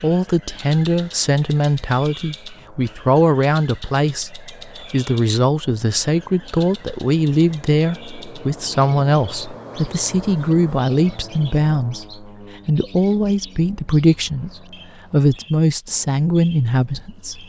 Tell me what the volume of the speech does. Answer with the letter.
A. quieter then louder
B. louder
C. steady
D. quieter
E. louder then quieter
C.